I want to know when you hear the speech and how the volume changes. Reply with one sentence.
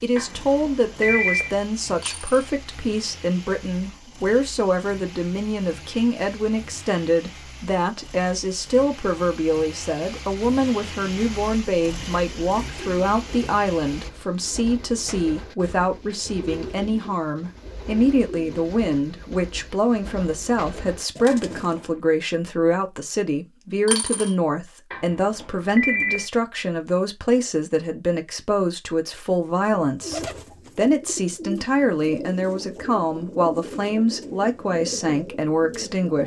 You can hear the speech from 0.0 to 36.2 s, at a steady volume.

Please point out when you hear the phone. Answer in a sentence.
The phone can be heard from 0.1 to 1.6 s, from 21.2 to 21.9 s and from 24.9 to 26.2 s.